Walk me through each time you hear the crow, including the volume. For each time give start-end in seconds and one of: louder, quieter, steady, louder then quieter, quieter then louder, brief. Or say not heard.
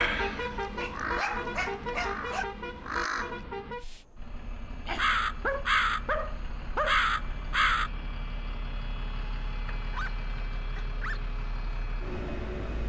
0.0-7.9 quieter then louder.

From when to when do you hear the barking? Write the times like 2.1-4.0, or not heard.
0.8-2.5, 4.8-7.0, 9.8-11.2.